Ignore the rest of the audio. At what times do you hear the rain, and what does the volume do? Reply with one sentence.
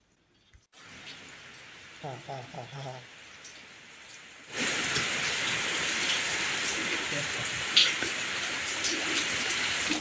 You can hear the rain from 0.0 to 9.9 s, getting louder.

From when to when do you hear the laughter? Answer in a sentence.
The laughter can be heard from 2.0 to 3.0 s and from 6.9 to 7.4 s.